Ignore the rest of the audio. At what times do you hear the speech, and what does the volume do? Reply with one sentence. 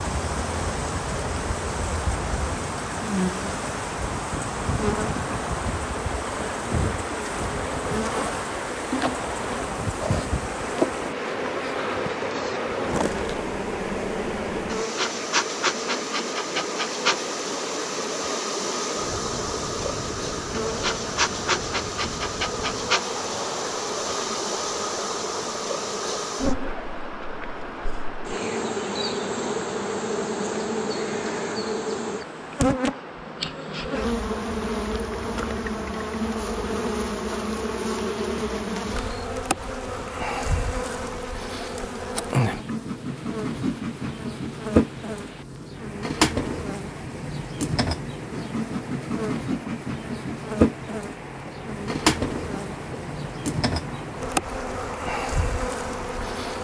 You can't hear the speech here.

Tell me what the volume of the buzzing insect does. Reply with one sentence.
The volume of the buzzing insect stays about the same.